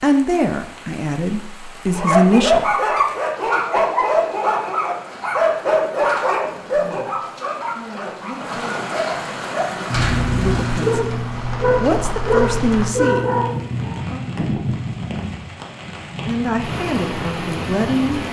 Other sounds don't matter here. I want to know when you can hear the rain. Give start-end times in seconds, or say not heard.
0.0-18.2.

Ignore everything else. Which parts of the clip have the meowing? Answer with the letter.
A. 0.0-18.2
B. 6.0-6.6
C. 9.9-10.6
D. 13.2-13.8
C.